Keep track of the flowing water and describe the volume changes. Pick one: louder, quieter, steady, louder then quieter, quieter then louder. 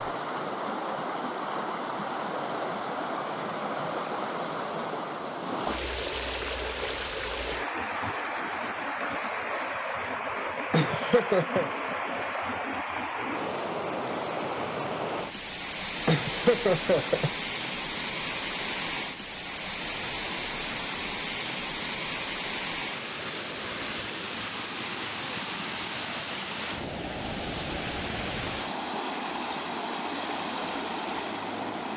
steady.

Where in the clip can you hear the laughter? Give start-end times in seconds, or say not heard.
10.7-11.7, 16.1-17.3.